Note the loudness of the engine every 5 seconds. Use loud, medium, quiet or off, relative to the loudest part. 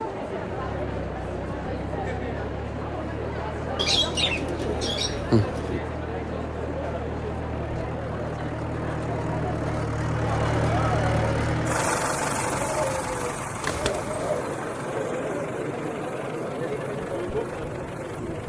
medium, medium, loud, medium.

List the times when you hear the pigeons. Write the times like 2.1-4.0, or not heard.
3.8-5.8, 12.4-14.4.